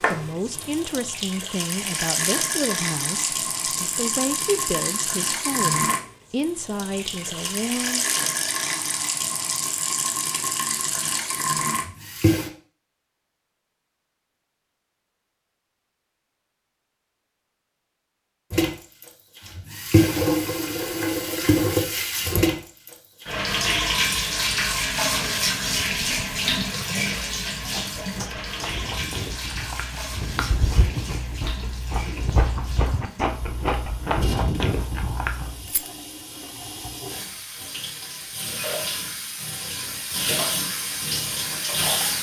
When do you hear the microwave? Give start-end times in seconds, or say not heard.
not heard.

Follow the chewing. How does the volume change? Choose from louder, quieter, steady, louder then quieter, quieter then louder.
louder.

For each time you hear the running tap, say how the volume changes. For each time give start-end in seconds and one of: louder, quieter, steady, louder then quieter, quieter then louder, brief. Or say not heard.
0.0-12.5 steady
18.5-42.1 quieter then louder.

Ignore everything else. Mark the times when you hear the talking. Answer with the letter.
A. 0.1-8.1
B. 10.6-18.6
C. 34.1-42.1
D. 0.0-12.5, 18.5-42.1
A.